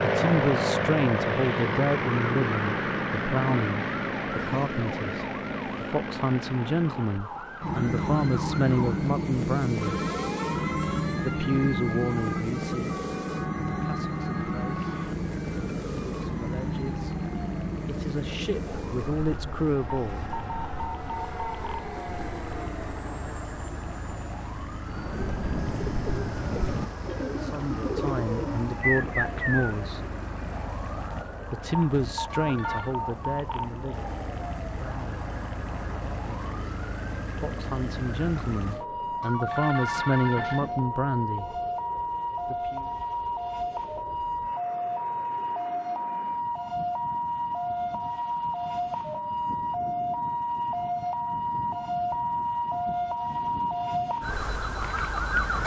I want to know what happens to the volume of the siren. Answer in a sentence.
The volume of the siren goes up.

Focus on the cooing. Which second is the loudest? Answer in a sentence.
The volume of the cooing peaks at 29 seconds.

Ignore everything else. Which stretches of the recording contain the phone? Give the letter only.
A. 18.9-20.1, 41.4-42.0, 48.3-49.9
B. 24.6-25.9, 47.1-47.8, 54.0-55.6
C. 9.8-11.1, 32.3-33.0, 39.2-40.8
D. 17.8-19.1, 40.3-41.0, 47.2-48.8
C.